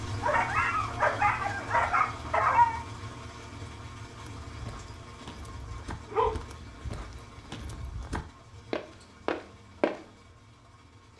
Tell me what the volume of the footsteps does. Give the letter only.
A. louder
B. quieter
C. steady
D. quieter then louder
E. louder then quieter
A.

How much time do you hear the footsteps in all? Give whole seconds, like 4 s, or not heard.
6 s.